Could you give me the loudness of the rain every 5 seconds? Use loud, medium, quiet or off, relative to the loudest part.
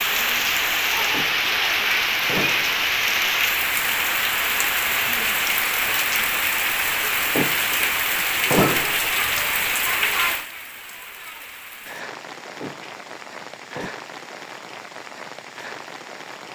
loud, loud, medium, quiet.